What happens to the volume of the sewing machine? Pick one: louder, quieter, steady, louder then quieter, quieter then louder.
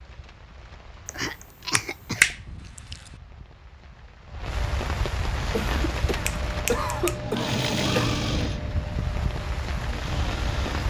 louder then quieter.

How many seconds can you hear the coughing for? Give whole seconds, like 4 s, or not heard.
4 s.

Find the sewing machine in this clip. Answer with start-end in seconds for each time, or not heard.
5.3-10.8.